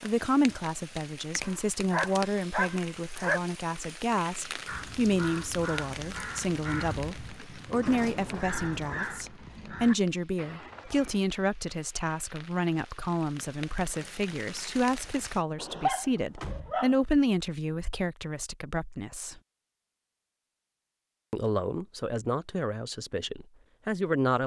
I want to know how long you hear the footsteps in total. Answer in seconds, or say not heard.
not heard.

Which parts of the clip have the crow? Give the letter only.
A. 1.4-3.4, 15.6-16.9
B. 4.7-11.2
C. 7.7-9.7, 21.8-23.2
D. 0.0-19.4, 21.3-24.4
B.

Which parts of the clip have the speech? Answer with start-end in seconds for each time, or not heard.
0.0-19.4, 21.3-24.4.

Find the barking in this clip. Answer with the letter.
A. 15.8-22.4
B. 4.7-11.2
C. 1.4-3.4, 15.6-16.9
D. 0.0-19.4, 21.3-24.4
C.